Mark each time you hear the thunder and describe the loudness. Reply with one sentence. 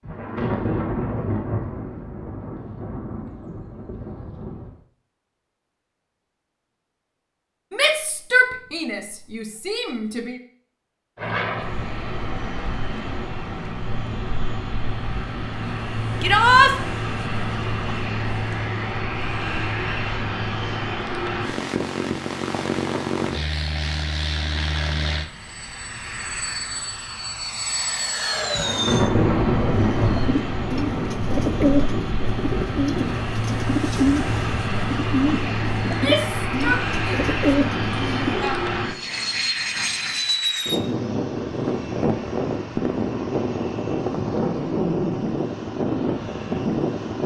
You can hear the thunder from 0.0 to 4.8 s, getting quieter; and from 28.5 to 33.2 s, getting quieter.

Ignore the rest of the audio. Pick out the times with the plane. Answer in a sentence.
The plane can be heard from 11.2 to 47.2 s.